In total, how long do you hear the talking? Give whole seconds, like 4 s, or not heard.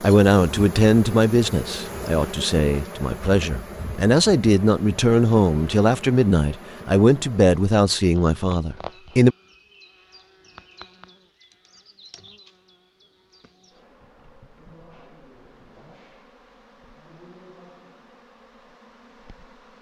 9 s.